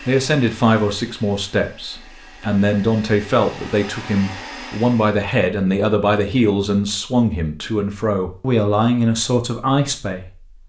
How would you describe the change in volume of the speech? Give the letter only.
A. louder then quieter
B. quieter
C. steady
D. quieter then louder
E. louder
C.